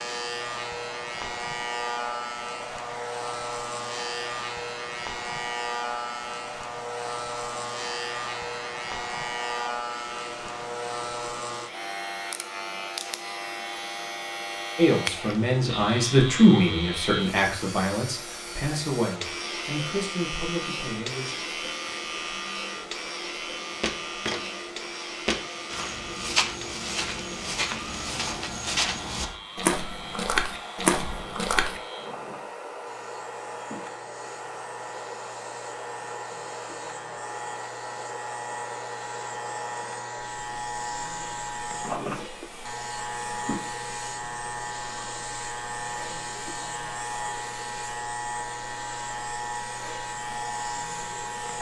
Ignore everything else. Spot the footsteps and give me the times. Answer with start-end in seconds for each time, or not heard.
23.8-31.8.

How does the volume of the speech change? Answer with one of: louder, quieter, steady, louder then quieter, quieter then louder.
quieter.